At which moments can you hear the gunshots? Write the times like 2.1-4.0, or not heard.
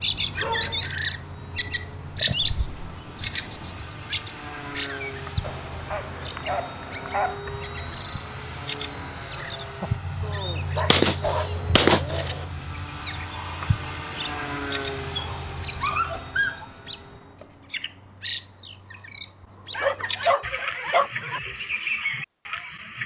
10.9-12.4.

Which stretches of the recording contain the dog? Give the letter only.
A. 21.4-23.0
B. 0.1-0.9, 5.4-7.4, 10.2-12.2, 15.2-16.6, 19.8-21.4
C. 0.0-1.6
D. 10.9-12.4
B.